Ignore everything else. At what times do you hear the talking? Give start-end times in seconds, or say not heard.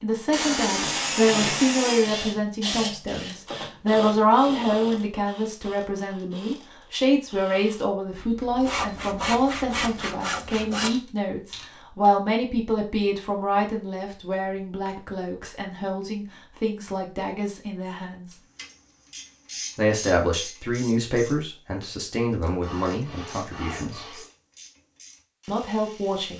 0.0-18.3, 19.8-24.1, 25.4-26.3.